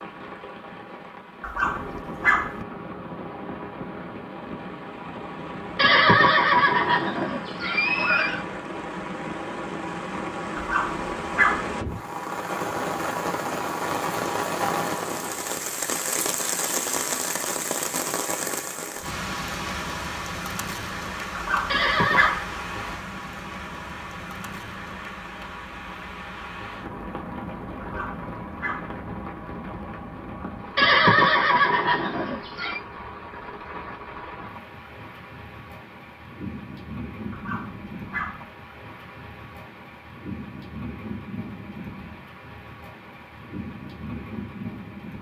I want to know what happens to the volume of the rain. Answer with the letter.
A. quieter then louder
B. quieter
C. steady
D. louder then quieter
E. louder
D.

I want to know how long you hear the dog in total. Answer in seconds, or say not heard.
6 s.